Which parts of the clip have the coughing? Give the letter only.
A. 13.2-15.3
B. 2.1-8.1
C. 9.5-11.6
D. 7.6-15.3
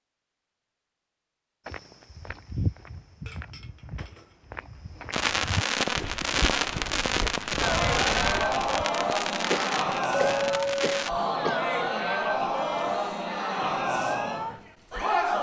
C.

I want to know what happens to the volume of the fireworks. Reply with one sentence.
The volume of the fireworks goes down.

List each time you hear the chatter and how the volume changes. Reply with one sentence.
The chatter can be heard from 7.6 to 15.3 s, at a steady volume.